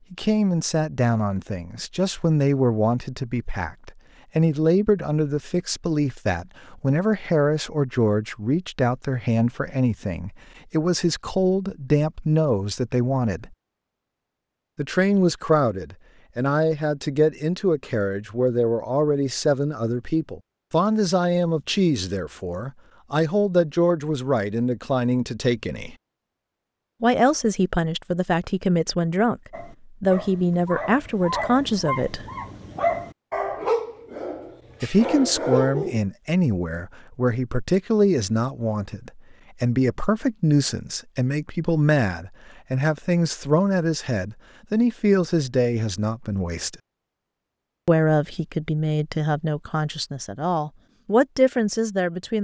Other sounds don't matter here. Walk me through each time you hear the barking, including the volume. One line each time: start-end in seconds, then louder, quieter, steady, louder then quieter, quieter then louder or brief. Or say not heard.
29.5-36.0 louder.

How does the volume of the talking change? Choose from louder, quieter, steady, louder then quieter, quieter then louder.
steady.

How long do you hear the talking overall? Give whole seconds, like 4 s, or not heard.
46 s.